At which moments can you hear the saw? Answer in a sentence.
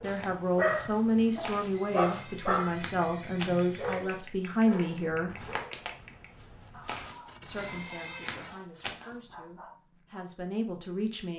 The saw can be heard from 7.2 to 8.9 s.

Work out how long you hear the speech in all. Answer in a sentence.
The speech can be heard for 9 seconds in total.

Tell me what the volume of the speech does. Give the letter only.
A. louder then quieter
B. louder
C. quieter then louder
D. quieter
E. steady
C.